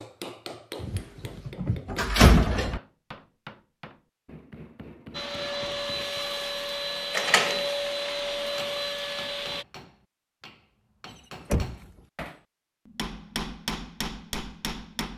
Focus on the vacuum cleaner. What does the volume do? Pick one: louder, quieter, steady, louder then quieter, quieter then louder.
steady.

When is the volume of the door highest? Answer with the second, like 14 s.
2 s.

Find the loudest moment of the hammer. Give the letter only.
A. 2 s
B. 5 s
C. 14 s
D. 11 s
C.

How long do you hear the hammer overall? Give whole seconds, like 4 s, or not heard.
13 s.